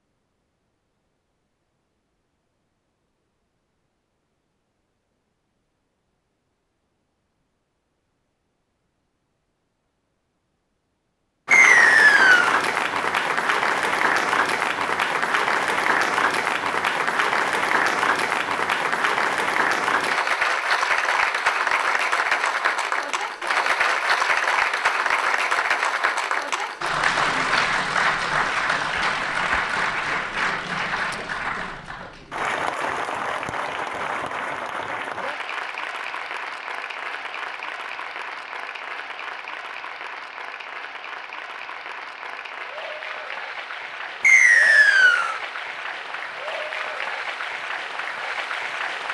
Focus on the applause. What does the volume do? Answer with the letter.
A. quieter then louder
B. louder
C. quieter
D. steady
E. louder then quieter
C.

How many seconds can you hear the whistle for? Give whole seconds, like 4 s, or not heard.
2 s.